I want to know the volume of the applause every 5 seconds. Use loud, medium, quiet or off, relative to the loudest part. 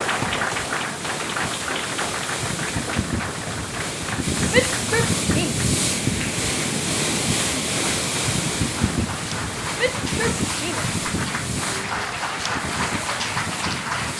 loud, medium, loud.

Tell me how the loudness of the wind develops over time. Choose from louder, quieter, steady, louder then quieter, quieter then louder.
louder then quieter.